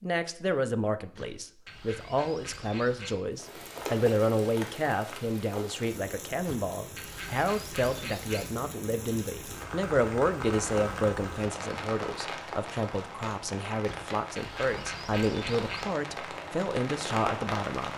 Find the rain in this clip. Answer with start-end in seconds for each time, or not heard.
3.4-17.9.